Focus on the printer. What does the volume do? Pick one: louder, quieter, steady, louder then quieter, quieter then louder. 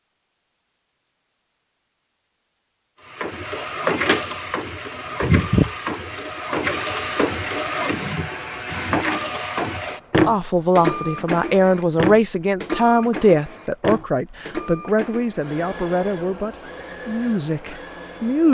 quieter.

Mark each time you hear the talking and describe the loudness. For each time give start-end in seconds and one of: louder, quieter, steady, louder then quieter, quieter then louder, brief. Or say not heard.
10.2-18.4 quieter.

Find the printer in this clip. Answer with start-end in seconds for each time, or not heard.
3.1-18.4.